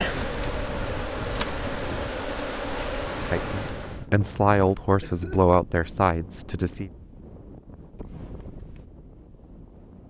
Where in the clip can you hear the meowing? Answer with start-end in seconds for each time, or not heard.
not heard.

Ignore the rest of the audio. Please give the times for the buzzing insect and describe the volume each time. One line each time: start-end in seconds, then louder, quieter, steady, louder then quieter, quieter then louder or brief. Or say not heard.
0.0-4.0 steady.